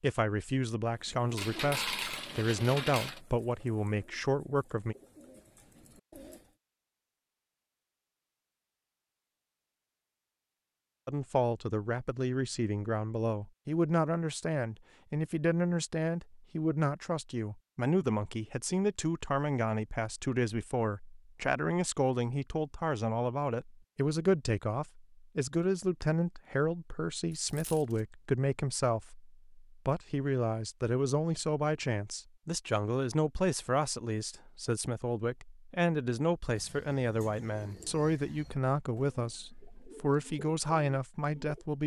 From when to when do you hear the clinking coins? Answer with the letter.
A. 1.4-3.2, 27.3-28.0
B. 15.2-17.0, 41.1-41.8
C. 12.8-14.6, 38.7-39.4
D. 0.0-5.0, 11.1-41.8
A.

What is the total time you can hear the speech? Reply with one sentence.
You can hear the speech for 36 seconds altogether.